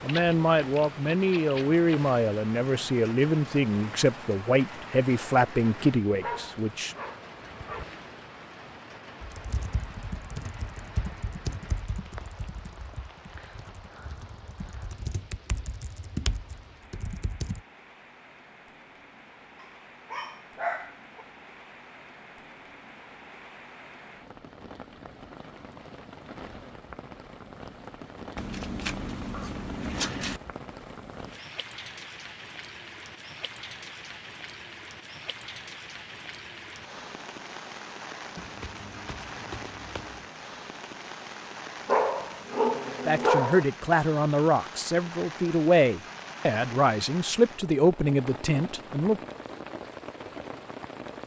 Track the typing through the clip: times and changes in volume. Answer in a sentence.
You can hear the typing from 9.2 to 17.6 s, getting quieter then louder.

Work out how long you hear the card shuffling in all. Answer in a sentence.
You can hear the card shuffling for 6 seconds altogether.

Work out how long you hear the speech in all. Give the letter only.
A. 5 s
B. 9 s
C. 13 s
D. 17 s
C.